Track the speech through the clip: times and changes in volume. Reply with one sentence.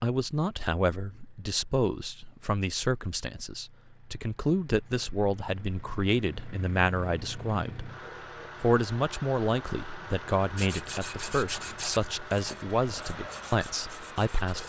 You can hear the speech from 0.0 to 7.9 s, at a steady volume; and from 8.6 to 14.6 s, at a steady volume.